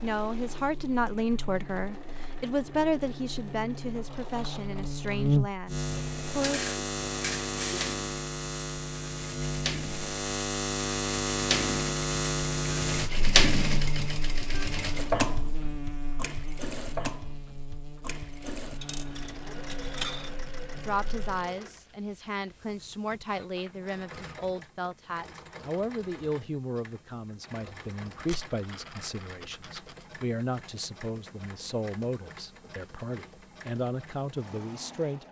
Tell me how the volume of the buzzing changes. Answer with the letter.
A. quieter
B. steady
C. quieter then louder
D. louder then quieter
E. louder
D.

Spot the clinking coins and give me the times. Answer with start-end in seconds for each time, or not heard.
6.4-8.0, 18.8-20.4, 28.1-29.9.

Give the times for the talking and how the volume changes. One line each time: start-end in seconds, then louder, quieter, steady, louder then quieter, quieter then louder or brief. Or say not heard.
0.0-6.6 quieter
20.8-35.2 steady.